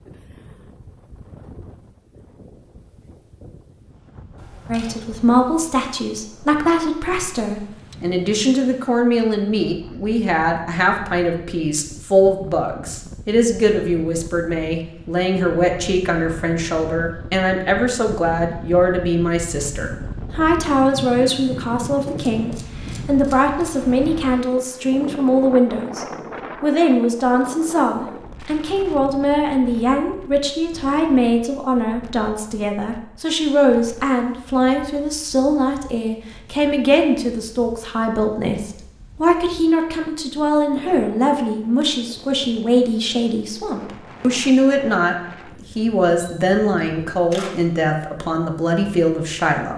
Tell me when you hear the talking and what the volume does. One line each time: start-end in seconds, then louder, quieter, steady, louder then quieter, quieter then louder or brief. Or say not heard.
4.7-49.7 steady.